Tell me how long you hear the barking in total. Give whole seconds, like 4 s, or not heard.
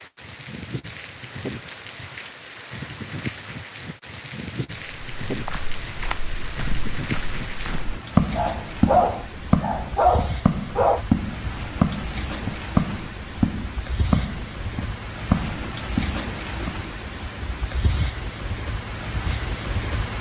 3 s.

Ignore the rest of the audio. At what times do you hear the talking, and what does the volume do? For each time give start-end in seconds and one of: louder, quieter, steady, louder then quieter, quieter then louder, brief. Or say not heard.
not heard.